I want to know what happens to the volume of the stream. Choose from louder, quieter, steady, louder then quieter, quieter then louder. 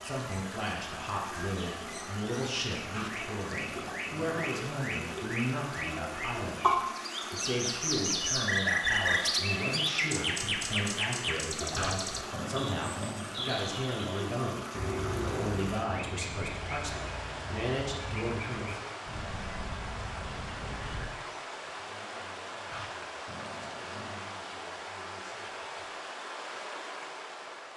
steady.